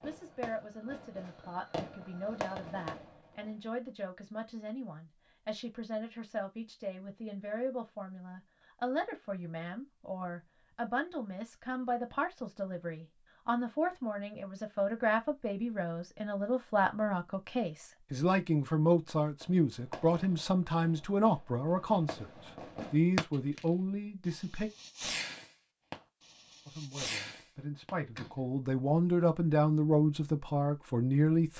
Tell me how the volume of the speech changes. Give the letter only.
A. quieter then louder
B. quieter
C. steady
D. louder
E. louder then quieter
D.